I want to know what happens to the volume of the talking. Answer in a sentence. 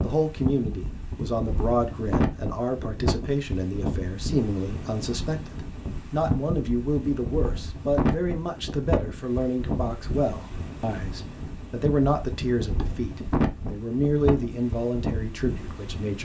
The volume of the talking stays about the same.